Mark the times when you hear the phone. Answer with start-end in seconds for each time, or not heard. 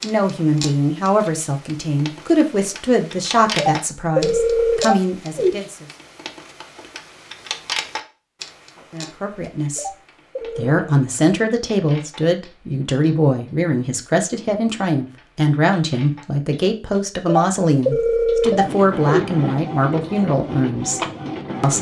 3.5-5.5, 9.8-10.8, 17.2-19.2.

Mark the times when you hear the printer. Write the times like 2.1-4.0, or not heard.
18.4-21.7.